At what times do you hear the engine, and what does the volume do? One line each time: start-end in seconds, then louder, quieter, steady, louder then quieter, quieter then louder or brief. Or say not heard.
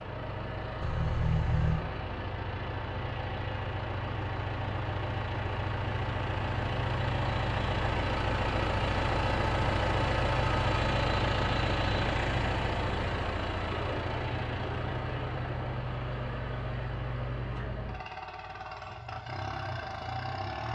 0.0-20.7 louder then quieter.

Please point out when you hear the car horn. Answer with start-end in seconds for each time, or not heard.
0.8-1.9.